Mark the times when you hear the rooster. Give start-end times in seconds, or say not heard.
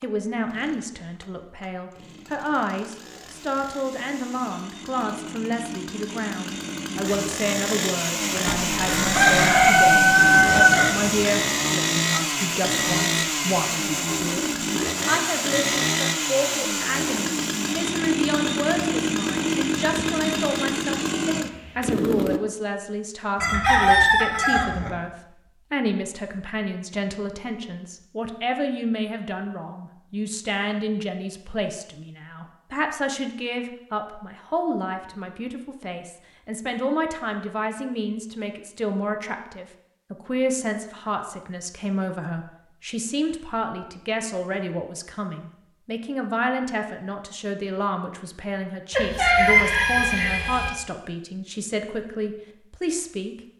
8.4-10.9, 23.4-24.9, 49.0-50.7.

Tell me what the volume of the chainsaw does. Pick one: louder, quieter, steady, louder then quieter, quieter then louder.
louder.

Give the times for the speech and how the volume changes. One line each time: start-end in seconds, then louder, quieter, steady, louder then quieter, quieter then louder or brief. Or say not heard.
0.0-53.4 steady.